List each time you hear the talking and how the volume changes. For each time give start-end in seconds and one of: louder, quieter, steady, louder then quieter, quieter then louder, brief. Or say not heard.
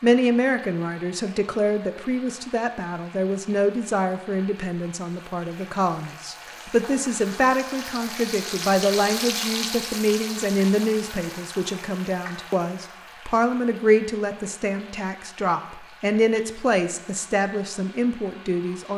0.0-18.9 steady.